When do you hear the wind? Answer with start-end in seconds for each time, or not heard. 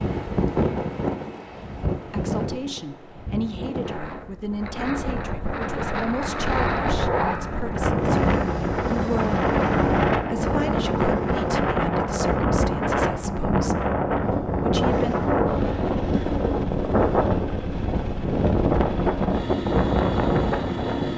0.0-21.1.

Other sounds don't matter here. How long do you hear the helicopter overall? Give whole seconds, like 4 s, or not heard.
10 s.